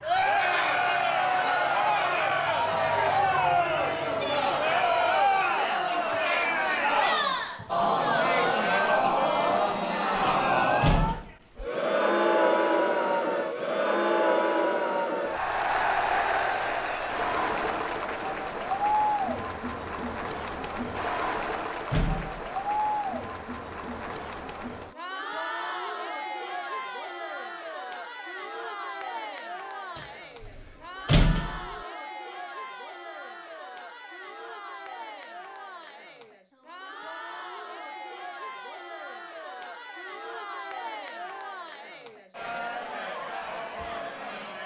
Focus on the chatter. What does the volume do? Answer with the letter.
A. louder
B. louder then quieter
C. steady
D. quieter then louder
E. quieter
E.